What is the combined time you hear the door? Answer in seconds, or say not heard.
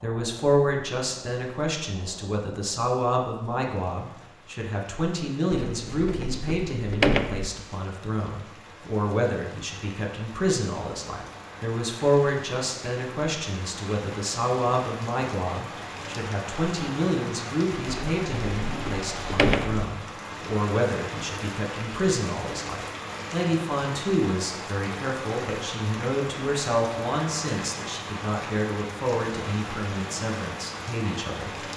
4 s.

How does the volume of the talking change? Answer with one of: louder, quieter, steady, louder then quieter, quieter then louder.
steady.